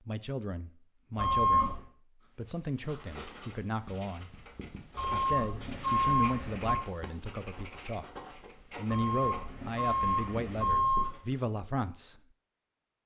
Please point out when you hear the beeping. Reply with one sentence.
You can hear the beeping from 1.1 to 1.9 s, from 5.0 to 6.8 s and from 8.9 to 11.2 s.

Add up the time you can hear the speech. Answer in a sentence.
You can hear the speech for 11 seconds altogether.